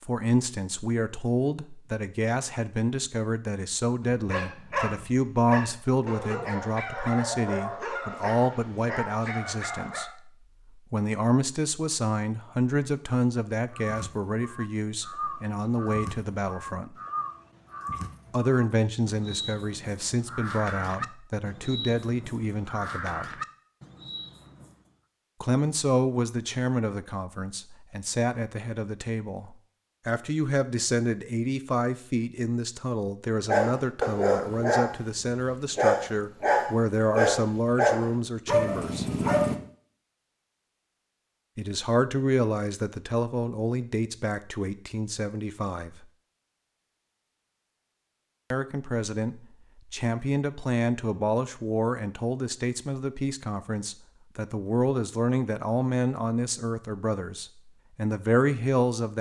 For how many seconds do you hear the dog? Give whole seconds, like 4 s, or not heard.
12 s.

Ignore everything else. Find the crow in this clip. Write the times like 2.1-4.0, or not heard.
13.7-24.9.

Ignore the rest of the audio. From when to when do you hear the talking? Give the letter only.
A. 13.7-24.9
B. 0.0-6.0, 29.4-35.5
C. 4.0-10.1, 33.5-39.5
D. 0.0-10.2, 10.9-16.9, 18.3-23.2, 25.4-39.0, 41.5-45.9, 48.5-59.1
D.